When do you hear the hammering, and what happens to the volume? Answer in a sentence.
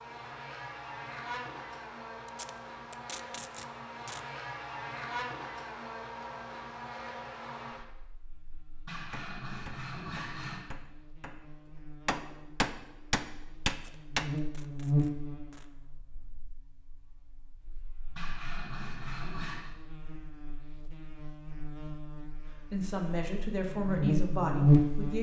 You can hear the hammering from 9.1 to 14.3 s, getting louder.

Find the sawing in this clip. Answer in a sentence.
You can hear the sawing from 8.8 to 10.7 s and from 18.1 to 19.8 s.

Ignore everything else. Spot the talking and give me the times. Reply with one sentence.
You can hear the talking from 22.5 to 25.1 s.